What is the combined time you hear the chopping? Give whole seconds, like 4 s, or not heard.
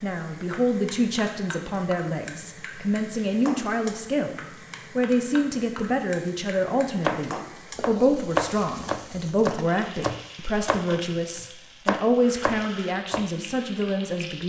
6 s.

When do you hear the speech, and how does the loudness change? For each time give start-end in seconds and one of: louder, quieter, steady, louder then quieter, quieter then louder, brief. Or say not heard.
0.0-14.4 steady.